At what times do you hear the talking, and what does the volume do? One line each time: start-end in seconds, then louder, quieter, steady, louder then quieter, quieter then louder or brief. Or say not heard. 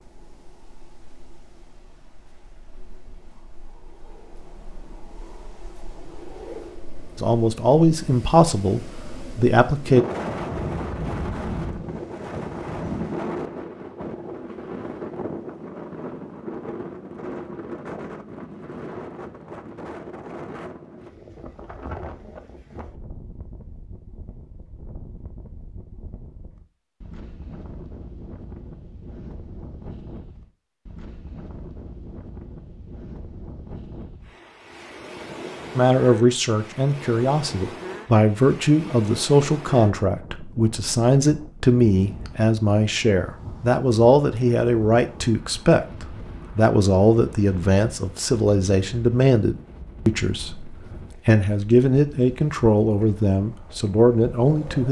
7.2-10.1 brief
35.8-54.8 steady.